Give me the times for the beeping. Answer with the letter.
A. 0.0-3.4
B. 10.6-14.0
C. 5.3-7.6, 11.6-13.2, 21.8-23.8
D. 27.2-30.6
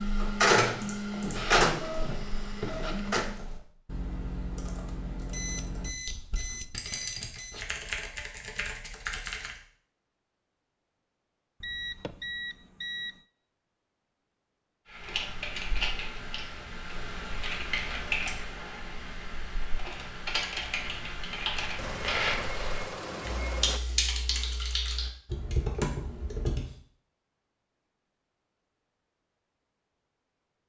C.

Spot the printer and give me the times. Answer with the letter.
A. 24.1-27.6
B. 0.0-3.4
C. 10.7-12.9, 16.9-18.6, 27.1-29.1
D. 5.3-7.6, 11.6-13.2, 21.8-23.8
B.